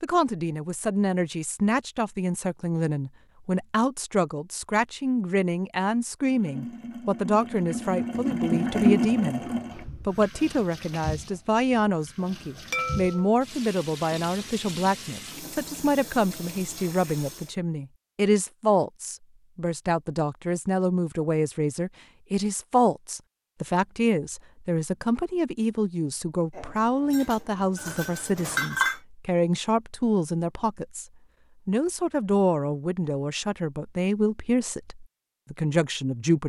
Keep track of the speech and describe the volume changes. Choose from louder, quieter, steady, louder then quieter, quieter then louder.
steady.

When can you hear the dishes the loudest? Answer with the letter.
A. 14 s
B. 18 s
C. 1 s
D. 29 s
D.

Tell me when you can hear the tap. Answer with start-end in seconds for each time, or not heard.
6.2-17.6.